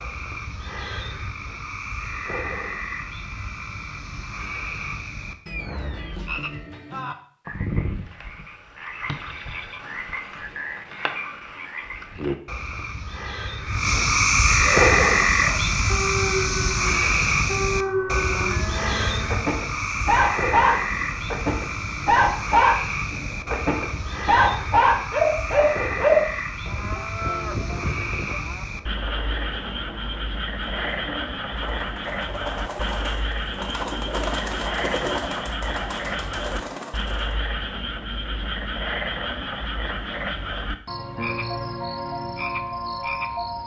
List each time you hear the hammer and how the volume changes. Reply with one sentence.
You can't hear the hammer here.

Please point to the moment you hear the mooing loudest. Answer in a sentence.
The volume of the mooing peaks at 27 seconds.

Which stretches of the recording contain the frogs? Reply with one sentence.
You can hear the frogs from 0.0 to 43.6 s.